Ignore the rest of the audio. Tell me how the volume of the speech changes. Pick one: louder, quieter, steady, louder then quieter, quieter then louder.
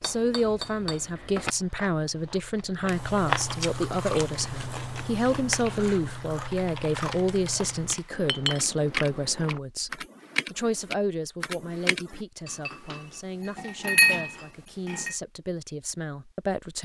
quieter.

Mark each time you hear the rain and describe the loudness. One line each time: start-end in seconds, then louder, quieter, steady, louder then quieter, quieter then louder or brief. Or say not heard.
not heard.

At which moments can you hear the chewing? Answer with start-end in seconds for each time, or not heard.
1.4-9.6.